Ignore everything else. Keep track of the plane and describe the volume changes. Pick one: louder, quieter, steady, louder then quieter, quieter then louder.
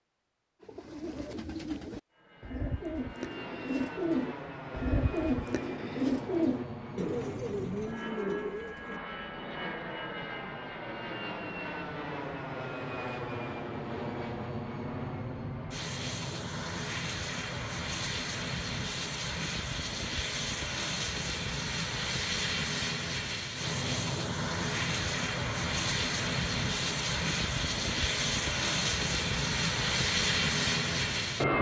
louder.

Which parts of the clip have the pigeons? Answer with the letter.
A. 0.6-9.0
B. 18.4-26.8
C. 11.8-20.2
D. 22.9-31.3
A.